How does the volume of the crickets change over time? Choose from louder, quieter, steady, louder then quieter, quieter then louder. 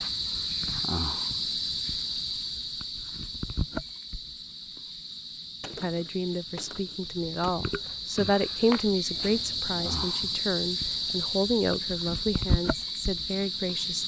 quieter then louder.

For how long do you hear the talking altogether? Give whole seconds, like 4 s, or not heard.
8 s.